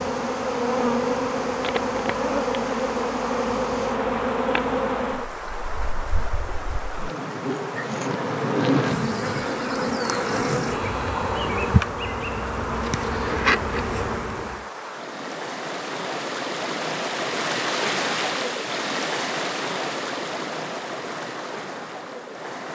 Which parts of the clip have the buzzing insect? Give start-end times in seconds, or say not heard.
0.0-14.7.